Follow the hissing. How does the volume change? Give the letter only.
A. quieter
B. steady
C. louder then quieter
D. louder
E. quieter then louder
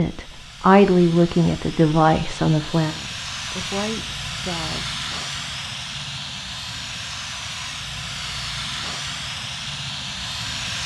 D.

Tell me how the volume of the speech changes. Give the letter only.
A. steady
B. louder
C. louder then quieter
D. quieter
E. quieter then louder
E.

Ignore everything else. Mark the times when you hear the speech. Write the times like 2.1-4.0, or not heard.
0.0-5.0.